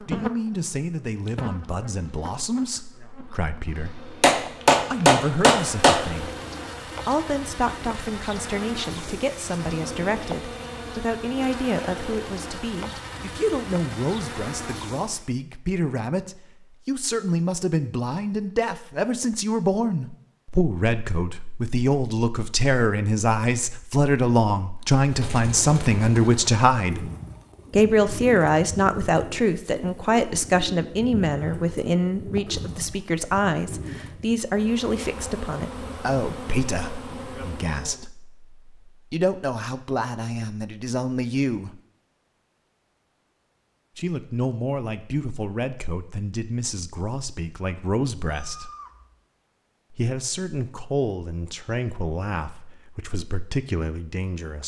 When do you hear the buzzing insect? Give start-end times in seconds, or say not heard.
0.0-15.3, 34.5-38.0.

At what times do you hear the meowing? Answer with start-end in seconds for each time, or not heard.
48.2-49.2.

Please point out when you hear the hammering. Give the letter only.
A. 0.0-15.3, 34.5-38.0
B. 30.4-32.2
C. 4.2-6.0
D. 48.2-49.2
C.